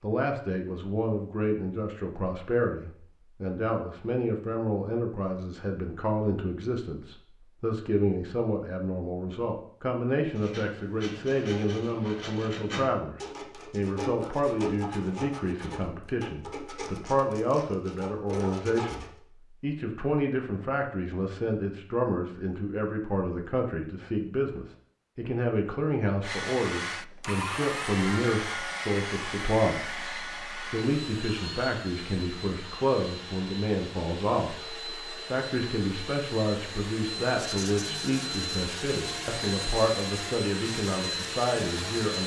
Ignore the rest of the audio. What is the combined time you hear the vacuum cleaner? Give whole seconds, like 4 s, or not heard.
16 s.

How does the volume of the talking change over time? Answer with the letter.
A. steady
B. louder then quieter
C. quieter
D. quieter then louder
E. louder
A.